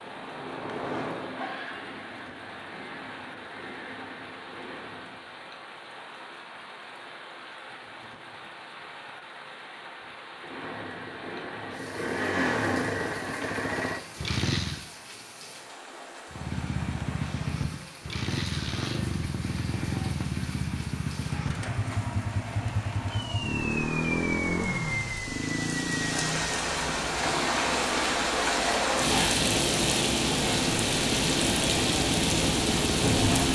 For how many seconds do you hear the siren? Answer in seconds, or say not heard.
not heard.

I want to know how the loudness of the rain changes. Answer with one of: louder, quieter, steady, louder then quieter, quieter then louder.
louder.